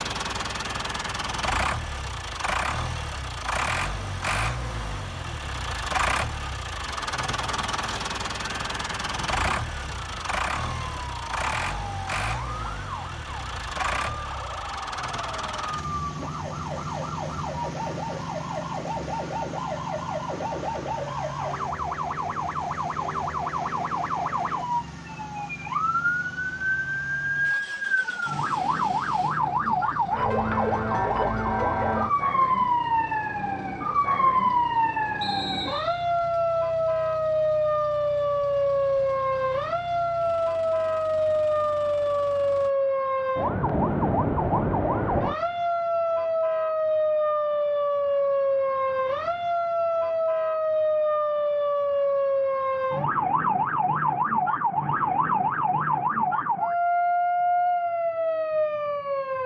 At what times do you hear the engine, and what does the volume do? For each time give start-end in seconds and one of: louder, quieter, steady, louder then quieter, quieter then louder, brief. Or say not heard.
0.0-42.7 quieter.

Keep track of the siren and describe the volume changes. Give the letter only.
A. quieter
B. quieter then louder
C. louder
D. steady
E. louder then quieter
C.